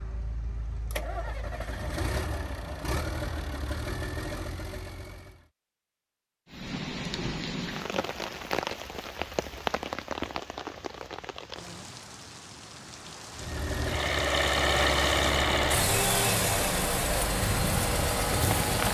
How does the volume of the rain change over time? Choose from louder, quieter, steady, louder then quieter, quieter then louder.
quieter then louder.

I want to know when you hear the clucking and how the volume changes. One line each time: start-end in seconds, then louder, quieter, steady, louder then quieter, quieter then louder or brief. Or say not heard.
not heard.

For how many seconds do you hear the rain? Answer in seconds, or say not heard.
12 s.